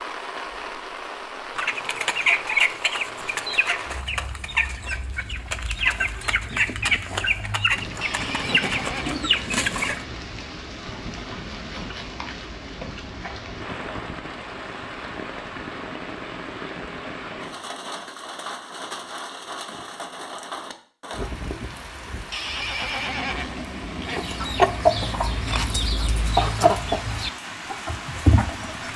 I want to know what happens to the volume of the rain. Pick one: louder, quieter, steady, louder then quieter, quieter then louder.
steady.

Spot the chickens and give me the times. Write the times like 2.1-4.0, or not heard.
1.6-10.0, 24.1-28.9.